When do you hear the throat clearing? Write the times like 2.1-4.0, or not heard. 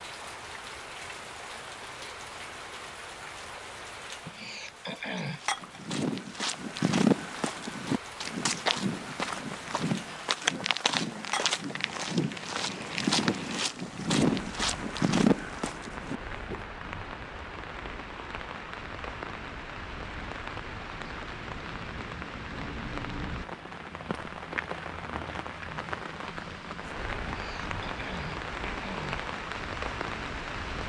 4.2-5.4, 27.2-29.3.